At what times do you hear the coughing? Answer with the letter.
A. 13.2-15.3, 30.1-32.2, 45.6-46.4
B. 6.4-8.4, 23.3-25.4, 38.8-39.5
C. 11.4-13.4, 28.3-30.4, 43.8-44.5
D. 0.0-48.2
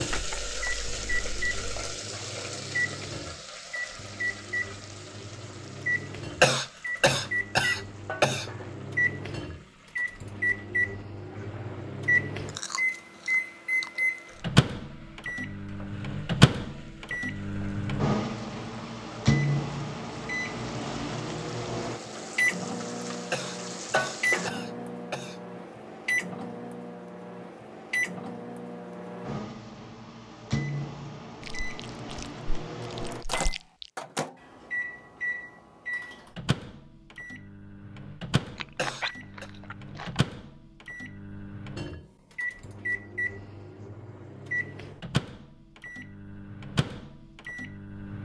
B.